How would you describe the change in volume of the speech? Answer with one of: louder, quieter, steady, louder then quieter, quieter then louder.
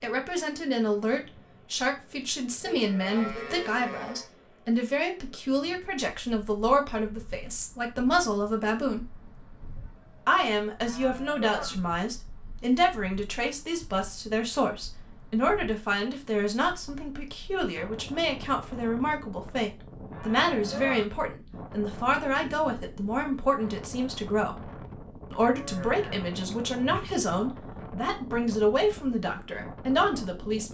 steady.